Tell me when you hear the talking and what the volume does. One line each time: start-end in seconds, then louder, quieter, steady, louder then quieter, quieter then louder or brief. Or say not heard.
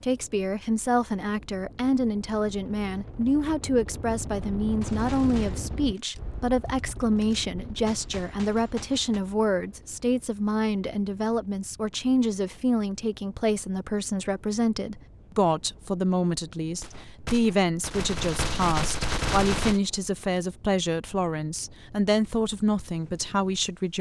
0.0-23.9 steady.